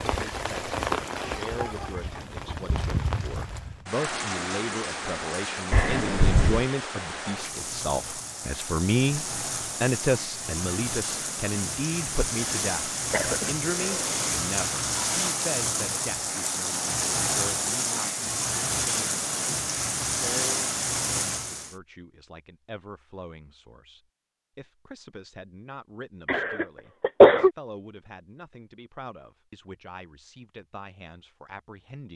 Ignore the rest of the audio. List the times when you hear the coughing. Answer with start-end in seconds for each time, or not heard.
5.7-6.7, 13.1-14.1, 26.2-27.5.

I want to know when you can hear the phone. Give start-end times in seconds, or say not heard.
not heard.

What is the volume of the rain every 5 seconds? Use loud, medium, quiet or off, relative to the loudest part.
loud, medium, loud, loud, loud, off, off.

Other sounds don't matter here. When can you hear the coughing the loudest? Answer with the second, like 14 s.
27 s.